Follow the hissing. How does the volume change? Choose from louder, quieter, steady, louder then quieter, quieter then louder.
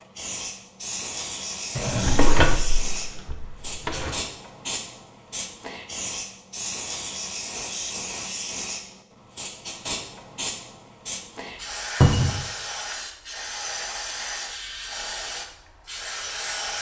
steady.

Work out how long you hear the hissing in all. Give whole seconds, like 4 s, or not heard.
17 s.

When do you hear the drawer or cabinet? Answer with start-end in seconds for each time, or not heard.
1.8-4.2, 12.0-12.4.